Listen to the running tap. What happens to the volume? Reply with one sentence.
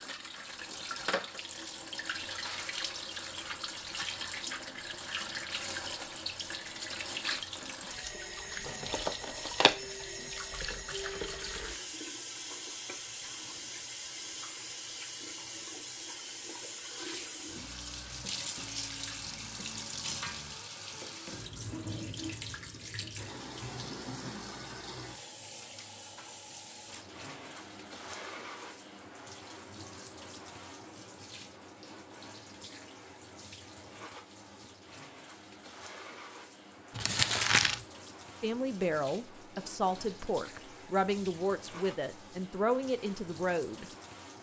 The volume of the running tap goes down.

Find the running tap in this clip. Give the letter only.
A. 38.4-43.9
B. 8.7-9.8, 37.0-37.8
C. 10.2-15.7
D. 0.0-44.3
D.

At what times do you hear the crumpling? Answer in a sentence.
The crumpling can be heard from 8.7 to 9.8 s and from 37.0 to 37.8 s.